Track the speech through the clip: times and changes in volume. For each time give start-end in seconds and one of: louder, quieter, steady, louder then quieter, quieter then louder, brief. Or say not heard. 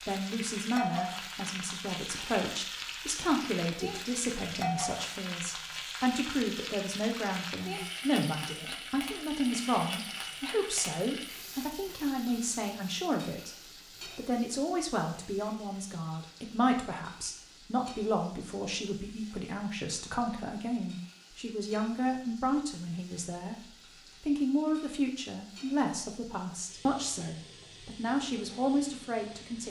0.1-23.6 steady
24.2-29.6 steady.